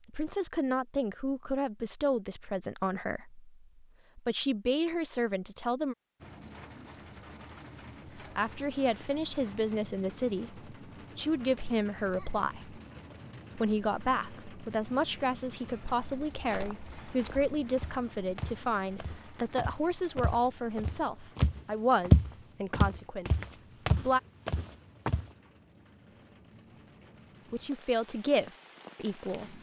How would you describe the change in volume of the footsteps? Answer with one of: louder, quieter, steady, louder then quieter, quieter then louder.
louder then quieter.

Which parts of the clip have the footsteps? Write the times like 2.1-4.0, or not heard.
16.4-25.3.